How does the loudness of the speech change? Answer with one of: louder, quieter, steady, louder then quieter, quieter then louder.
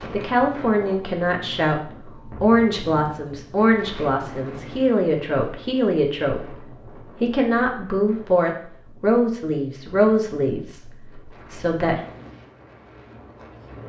steady.